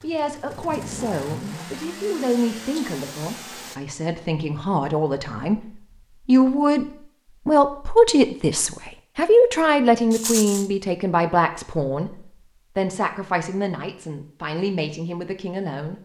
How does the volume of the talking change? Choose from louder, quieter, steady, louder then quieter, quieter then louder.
louder then quieter.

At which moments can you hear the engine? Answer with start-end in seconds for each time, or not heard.
0.0-3.8.